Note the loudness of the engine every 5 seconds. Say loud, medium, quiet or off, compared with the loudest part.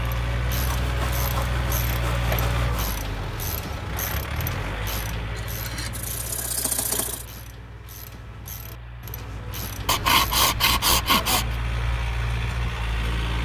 loud, medium, loud.